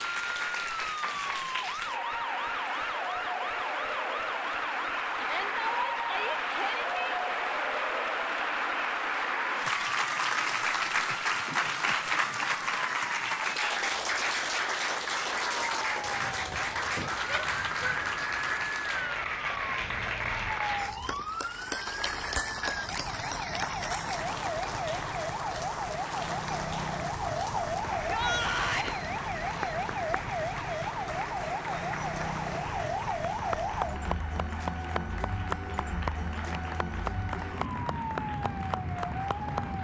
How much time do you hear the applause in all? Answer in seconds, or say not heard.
40 s.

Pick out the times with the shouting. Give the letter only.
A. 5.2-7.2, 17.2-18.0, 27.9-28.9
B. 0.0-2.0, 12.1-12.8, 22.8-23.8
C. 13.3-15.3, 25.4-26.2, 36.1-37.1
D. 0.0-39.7
A.